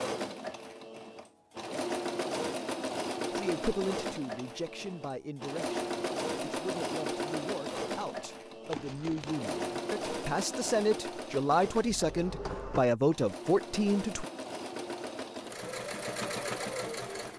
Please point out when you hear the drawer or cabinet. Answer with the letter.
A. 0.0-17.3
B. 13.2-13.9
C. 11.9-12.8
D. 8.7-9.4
C.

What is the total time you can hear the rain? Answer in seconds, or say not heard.
not heard.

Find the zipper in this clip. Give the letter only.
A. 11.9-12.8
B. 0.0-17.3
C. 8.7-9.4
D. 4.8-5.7
C.